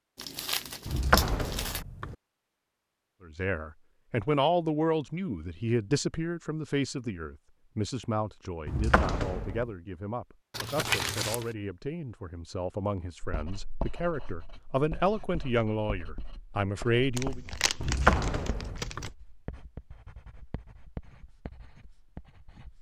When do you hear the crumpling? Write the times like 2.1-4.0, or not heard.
0.1-1.9, 10.5-11.5, 17.1-19.1.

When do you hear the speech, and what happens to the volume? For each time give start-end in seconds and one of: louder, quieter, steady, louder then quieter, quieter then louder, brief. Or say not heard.
3.2-17.4 quieter then louder.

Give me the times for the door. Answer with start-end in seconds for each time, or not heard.
0.8-2.1, 8.7-9.7, 17.8-19.1.